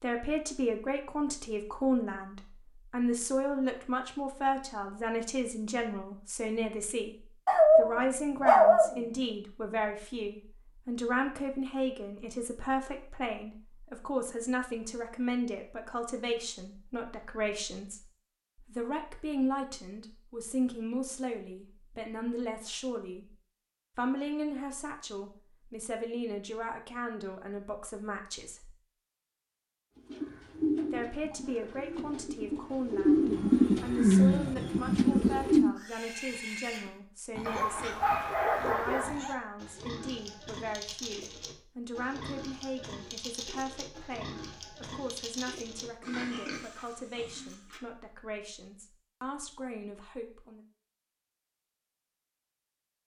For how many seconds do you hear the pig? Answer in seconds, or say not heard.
12 s.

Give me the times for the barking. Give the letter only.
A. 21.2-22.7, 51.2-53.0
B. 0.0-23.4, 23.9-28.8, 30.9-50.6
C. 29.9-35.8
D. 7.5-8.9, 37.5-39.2
D.